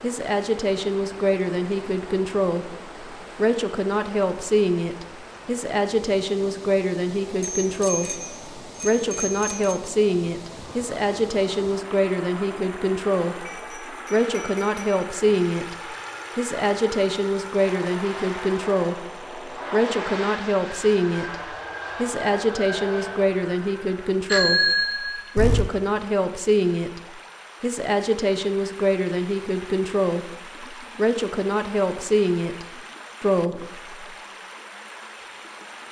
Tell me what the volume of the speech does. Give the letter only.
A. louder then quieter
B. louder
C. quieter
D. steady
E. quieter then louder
D.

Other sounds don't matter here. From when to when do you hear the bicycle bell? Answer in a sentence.
The bicycle bell can be heard from 7.4 to 9.8 s, from 13.4 to 15.4 s and from 24.2 to 25.7 s.